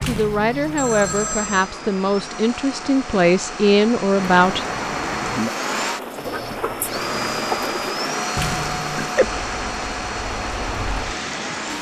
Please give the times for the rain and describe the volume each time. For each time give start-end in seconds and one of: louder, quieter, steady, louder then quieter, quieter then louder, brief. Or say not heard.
0.1-11.7 louder.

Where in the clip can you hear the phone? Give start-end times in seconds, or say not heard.
0.8-1.7, 6.2-7.7.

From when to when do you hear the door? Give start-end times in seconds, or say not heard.
0.0-1.3, 8.3-9.2.